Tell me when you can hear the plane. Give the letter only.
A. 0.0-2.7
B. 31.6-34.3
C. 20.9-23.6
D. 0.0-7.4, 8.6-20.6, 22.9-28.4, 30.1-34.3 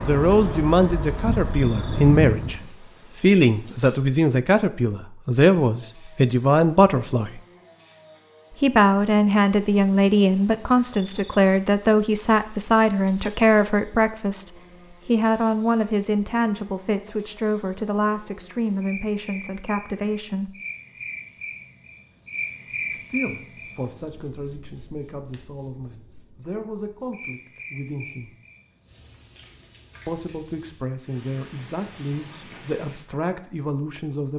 A.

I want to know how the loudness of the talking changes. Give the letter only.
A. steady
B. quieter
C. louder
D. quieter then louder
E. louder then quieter
B.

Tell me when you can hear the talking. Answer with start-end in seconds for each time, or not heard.
0.0-7.4, 8.6-20.6, 22.9-28.4, 30.1-34.3.